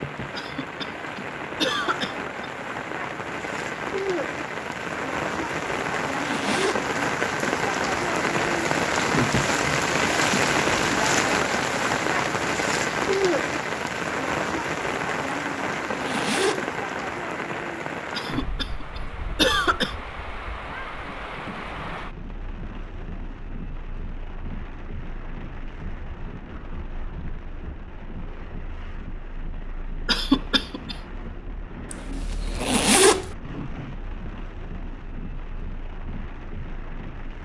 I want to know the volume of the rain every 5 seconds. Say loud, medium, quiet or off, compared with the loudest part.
medium, loud, loud, medium, quiet, quiet, quiet, quiet.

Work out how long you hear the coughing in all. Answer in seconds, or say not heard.
5 s.